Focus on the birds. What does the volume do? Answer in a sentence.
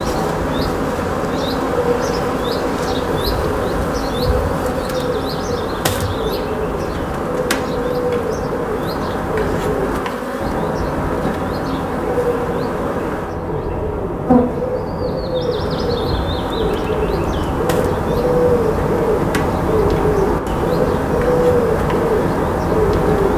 The loudness of the birds goes up.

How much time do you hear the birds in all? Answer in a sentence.
The birds can be heard for 23 seconds in total.